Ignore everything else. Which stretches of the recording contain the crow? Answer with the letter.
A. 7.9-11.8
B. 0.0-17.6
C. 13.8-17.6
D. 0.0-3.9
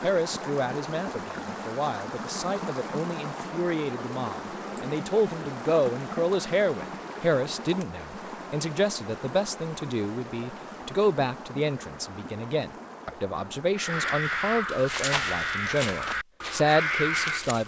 C.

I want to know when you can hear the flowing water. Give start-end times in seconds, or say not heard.
0.0-14.2.